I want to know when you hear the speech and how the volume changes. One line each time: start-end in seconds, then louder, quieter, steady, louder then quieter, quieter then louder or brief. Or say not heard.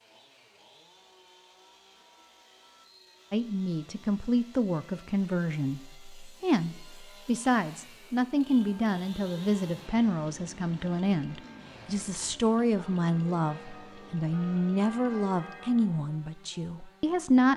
3.3-17.5 steady.